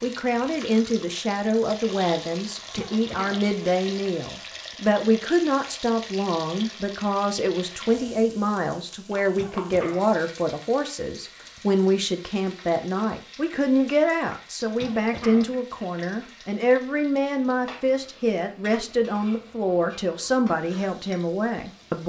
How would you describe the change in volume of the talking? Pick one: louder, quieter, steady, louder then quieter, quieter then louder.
steady.